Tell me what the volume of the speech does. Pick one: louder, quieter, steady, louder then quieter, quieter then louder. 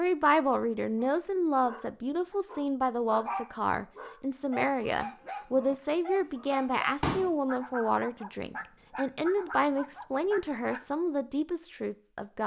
steady.